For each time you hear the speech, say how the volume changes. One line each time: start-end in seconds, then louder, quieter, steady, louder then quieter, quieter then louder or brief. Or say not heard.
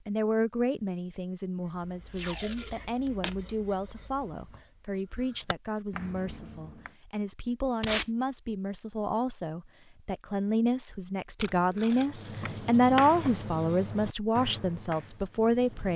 0.1-15.9 louder.